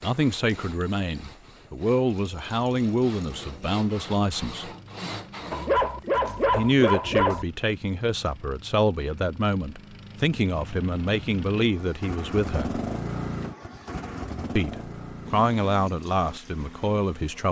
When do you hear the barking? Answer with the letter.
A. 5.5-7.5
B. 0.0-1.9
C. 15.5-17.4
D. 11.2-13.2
A.